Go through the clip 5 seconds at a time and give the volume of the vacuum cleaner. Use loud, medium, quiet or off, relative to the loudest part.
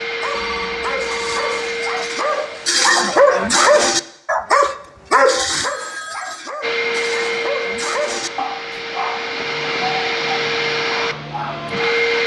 medium, loud, loud.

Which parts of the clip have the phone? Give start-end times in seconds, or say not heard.
0.3-1.9, 5.6-6.5, 9.2-9.8.